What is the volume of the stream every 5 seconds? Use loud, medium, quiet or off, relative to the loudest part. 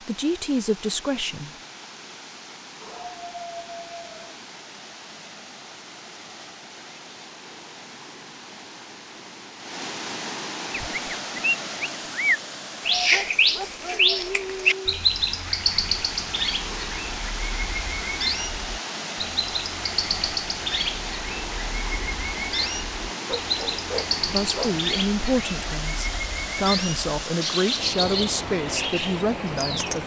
medium, medium, loud, loud, loud, loud.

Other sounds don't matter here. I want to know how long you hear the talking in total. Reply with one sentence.
The talking can be heard for 7 seconds in total.